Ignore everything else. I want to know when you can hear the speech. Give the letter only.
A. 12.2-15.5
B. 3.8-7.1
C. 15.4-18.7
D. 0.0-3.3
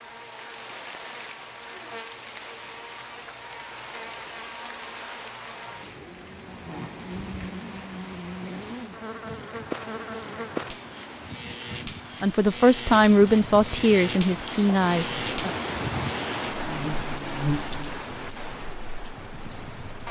A.